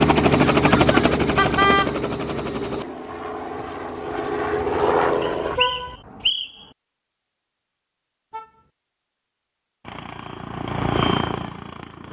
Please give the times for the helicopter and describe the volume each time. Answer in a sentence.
You can hear the helicopter from 0.0 to 5.5 s, getting quieter then louder; and briefly from 9.8 to 12.0 s.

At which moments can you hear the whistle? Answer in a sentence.
The whistle can be heard from 5.2 to 6.7 s.